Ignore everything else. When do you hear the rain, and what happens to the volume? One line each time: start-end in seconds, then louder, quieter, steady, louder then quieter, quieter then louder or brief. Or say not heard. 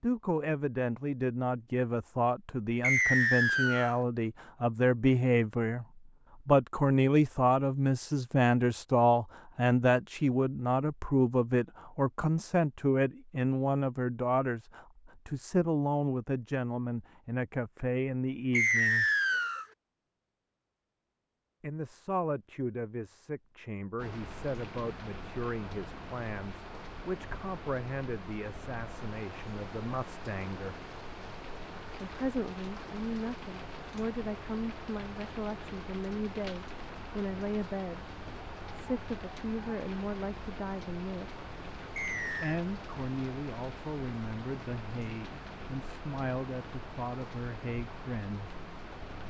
23.9-49.2 steady.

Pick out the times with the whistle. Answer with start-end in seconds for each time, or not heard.
2.8-4.0, 18.5-19.6, 42.0-42.6.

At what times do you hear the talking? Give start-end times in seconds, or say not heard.
0.0-5.8, 6.5-19.1, 21.6-30.8, 32.0-41.3, 42.4-48.5.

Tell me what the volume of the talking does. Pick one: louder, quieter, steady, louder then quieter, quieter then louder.
quieter.